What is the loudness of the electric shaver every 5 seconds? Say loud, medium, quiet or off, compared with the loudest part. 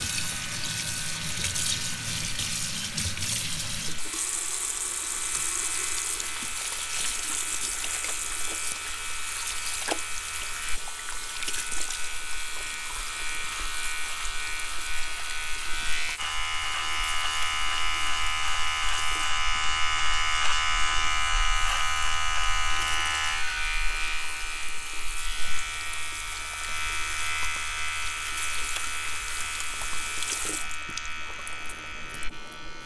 quiet, medium, medium, loud, loud, medium, medium.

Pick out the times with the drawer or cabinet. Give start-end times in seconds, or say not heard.
not heard.